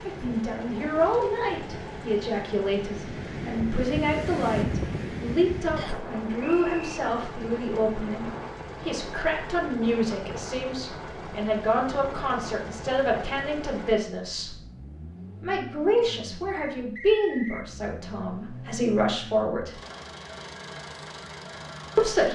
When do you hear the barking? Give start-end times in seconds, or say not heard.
not heard.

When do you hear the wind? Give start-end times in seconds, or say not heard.
0.0-13.5.